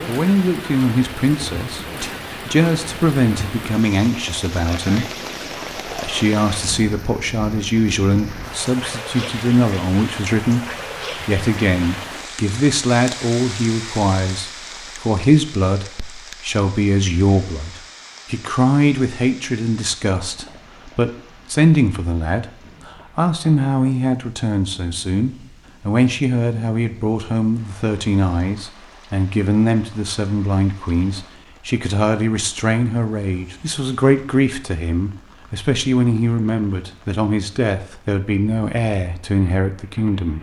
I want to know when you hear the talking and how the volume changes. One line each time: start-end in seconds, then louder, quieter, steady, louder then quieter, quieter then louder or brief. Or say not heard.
0.1-40.3 steady.